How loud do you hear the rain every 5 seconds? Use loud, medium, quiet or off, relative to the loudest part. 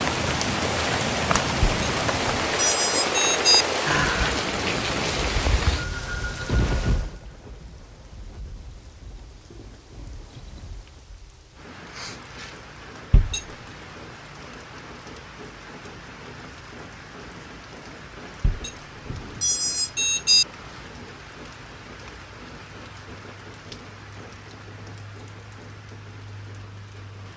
loud, medium, quiet, quiet, quiet, quiet.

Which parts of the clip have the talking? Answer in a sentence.
You can't hear the talking here.